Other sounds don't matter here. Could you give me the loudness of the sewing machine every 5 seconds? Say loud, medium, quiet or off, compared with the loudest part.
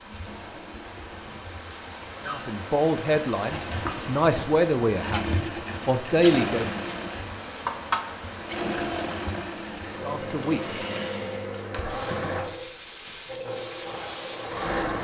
medium, loud, loud.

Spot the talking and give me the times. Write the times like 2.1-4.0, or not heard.
2.2-6.7, 10.0-10.6.